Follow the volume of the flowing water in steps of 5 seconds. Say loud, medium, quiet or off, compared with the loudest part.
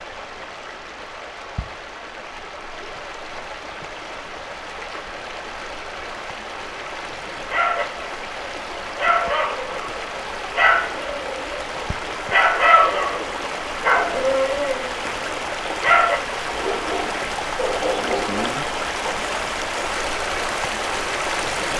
medium, medium, medium, loud, loud.